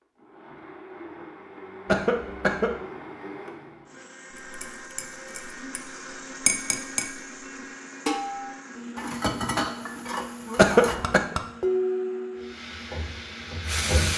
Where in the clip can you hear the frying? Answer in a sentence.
You can hear the frying from 12.3 to 14.1 s.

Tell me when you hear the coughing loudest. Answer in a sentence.
The loudest moment of the coughing is at 11 seconds.